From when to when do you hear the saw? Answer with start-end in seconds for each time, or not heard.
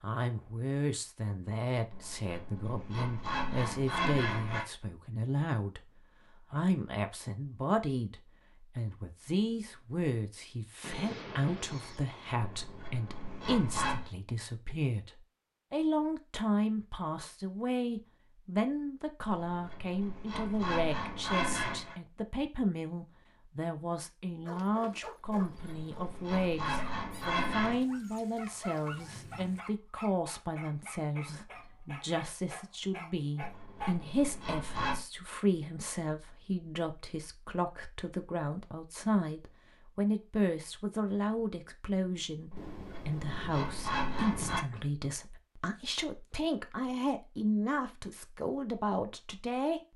1.9-4.7, 12.4-14.1, 19.2-21.9, 25.2-27.9, 33.4-35.0, 42.5-44.6.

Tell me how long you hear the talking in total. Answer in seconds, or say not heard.
49 s.